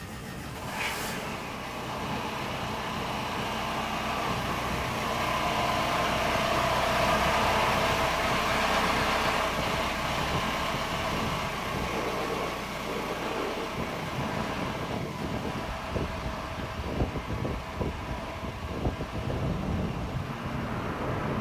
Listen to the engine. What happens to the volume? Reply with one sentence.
The volume of the engine goes up, then down.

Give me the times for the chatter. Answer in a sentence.
The chatter can't be heard in this clip.